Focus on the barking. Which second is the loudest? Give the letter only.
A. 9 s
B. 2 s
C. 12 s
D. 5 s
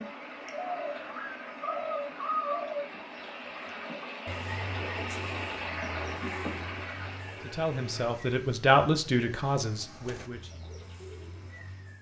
B.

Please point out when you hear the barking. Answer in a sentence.
You can hear the barking from 0.6 to 2.6 s.